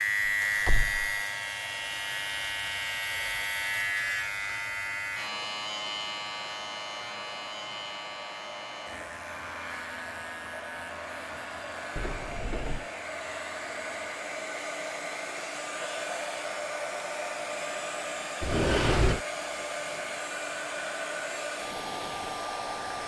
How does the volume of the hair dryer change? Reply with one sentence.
The volume of the hair dryer goes up.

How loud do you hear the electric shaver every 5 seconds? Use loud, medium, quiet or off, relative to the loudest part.
loud, medium, quiet, off, off.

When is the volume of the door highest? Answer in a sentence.
The volume of the door peaks at 19 seconds.